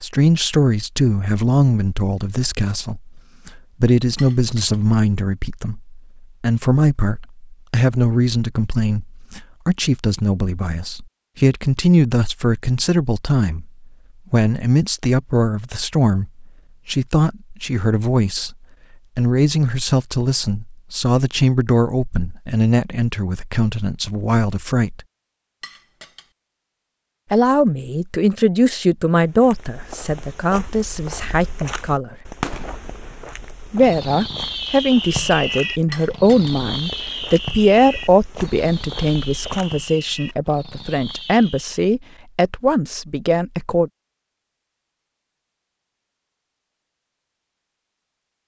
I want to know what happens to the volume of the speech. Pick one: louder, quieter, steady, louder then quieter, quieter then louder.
steady.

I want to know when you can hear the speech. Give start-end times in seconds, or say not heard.
0.0-18.6, 19.1-25.0, 27.3-32.1, 33.6-43.9.